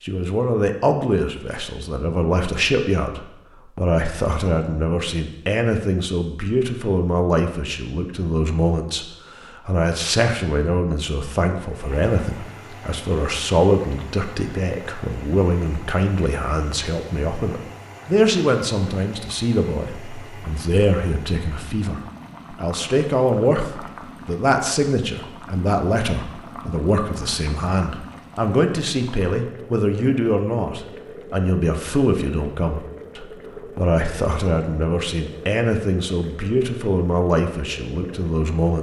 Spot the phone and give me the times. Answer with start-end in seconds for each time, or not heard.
not heard.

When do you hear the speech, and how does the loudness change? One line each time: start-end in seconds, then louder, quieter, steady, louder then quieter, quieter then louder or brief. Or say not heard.
0.0-38.7 steady.